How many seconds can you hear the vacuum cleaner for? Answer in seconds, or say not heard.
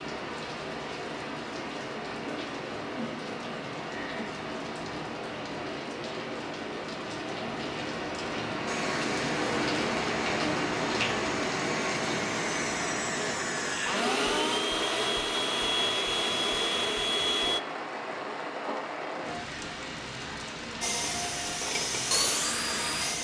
11 s.